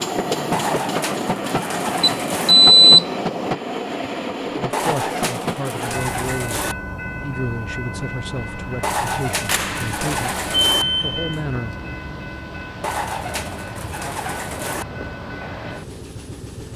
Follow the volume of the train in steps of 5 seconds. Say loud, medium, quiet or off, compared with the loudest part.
loud, medium, medium, medium.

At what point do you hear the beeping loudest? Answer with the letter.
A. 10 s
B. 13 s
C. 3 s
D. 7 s
C.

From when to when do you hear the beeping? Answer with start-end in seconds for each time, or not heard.
2.0-3.5, 9.4-11.3.